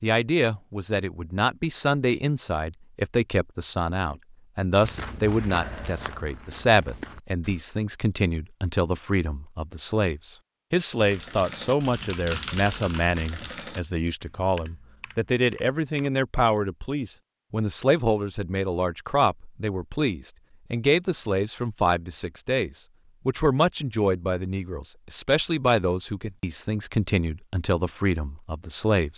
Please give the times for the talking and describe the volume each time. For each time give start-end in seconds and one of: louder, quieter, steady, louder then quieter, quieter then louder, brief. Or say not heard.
0.0-29.1 steady.